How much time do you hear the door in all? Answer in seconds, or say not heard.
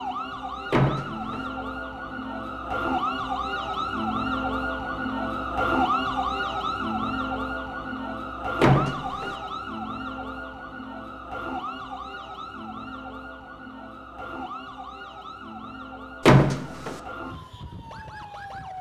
2 s.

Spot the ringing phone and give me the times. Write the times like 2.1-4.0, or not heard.
not heard.